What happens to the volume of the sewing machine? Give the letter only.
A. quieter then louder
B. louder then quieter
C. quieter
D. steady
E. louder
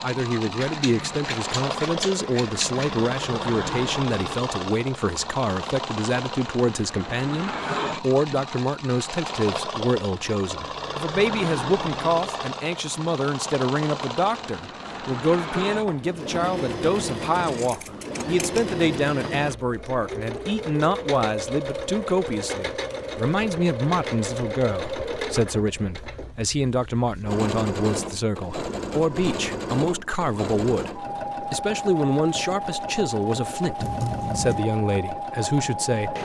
D.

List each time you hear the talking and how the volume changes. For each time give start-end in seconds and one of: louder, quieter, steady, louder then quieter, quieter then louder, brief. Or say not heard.
0.0-36.1 steady.